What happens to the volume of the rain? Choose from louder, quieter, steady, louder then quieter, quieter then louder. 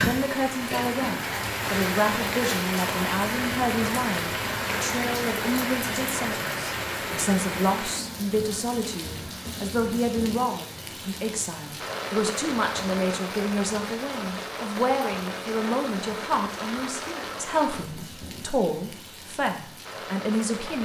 quieter.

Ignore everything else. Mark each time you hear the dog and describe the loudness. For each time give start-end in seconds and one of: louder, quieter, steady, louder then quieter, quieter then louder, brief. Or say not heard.
not heard.